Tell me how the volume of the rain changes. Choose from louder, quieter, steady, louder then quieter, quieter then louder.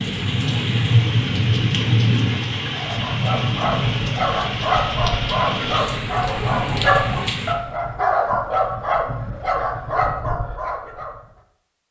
quieter.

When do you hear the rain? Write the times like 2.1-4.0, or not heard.
0.0-7.5.